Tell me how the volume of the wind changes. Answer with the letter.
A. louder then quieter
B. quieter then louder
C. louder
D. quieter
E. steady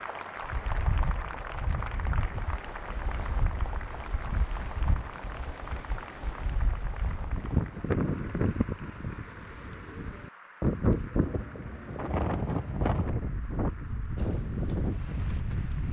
C.